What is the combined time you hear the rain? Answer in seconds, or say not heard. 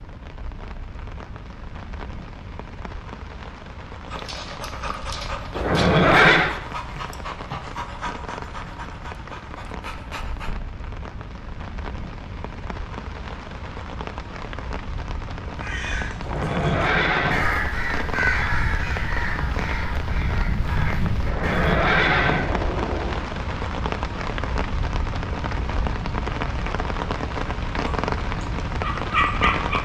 30 s.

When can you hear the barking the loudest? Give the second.
29 s.